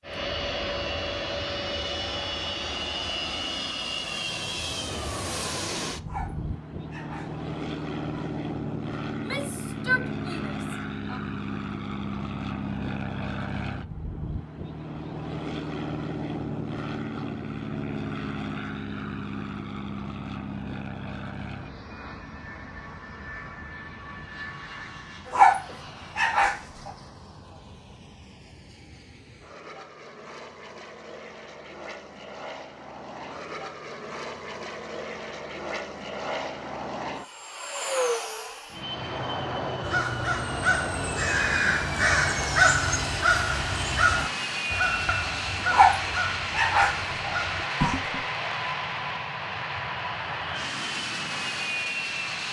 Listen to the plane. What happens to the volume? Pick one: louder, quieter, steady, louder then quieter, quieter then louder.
quieter then louder.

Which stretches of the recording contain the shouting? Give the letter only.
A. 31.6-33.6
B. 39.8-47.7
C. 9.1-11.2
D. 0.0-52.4
C.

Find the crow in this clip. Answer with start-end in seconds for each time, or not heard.
39.8-47.7.